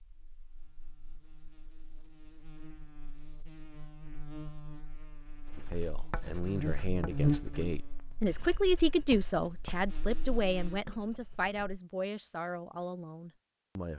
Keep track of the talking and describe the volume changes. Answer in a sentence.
The volume of the talking goes up, then down.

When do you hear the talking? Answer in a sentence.
You can hear the talking from 5.5 to 13.9 s.